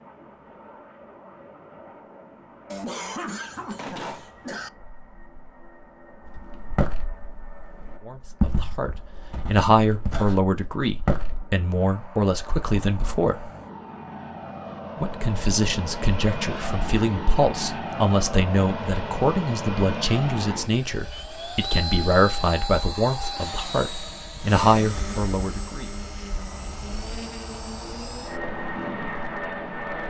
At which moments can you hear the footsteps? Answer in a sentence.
You can hear the footsteps from 6.2 to 11.4 s.